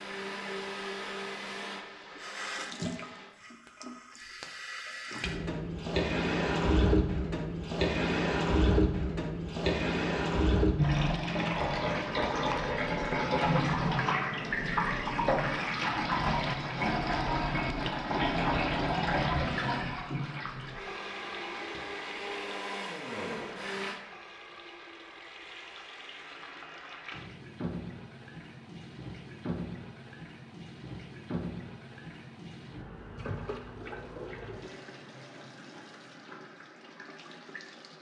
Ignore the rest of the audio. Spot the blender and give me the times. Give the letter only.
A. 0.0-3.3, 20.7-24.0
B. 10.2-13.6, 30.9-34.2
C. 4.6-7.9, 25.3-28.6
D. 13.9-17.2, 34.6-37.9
A.